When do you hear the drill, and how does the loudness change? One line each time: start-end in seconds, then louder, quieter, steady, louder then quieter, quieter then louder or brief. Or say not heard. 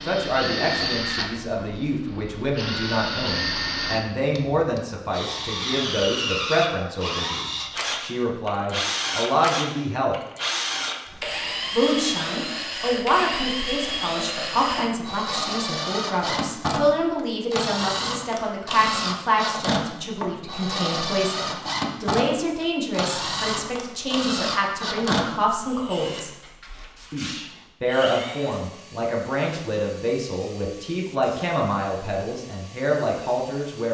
0.0-33.8 quieter.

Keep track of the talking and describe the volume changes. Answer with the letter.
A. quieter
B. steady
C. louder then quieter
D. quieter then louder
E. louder
B.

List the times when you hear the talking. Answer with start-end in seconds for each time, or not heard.
0.1-10.2, 11.7-26.3, 27.1-33.8.